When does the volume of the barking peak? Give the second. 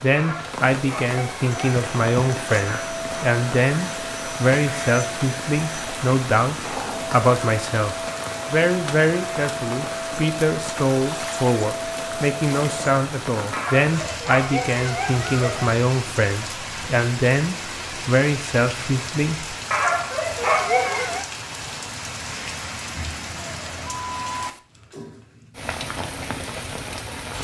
21 s.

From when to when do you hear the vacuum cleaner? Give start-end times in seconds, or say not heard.
1.5-12.9.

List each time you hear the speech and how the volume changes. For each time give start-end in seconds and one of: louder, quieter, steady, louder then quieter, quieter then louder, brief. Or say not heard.
0.0-19.6 steady.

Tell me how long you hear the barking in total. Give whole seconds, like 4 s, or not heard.
5 s.